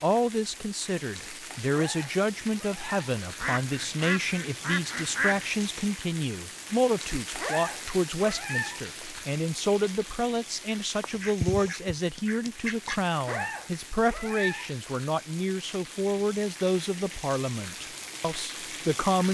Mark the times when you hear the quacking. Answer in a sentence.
The quacking can be heard from 3.4 to 5.5 s and from 11.0 to 13.0 s.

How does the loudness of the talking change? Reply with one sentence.
The volume of the talking stays about the same.